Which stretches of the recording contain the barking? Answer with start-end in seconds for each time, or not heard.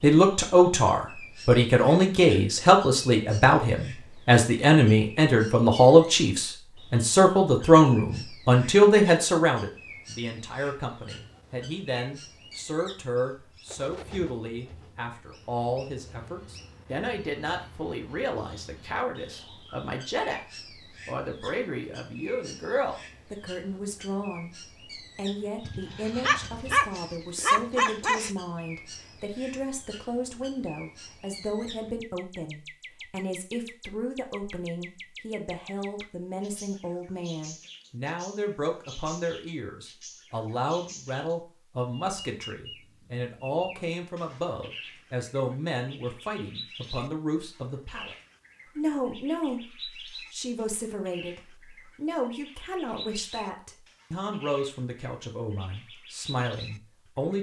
25.6-28.3.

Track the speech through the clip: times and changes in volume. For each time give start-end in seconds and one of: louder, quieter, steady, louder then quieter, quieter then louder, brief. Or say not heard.
0.0-48.1 quieter
48.8-57.3 steady.